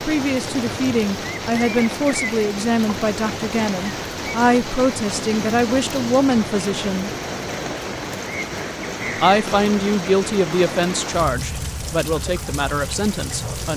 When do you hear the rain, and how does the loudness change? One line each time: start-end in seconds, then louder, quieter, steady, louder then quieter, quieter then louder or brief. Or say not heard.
0.0-13.7 steady.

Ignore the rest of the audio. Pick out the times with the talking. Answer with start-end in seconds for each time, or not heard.
0.1-7.1, 9.2-13.7.